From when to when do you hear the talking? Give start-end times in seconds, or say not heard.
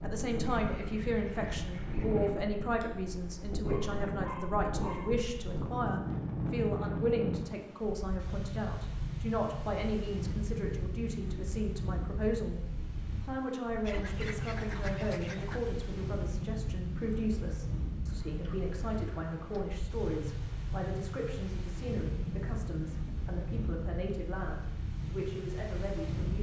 0.0-26.3.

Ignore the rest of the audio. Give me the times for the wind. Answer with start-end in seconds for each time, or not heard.
0.0-26.3.